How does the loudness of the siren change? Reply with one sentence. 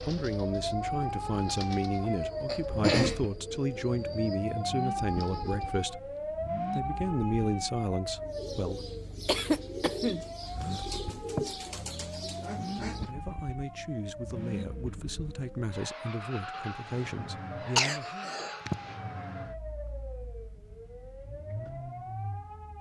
The volume of the siren goes down.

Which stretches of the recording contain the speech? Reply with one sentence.
The speech can be heard from 0.0 to 8.8 s and from 12.7 to 18.3 s.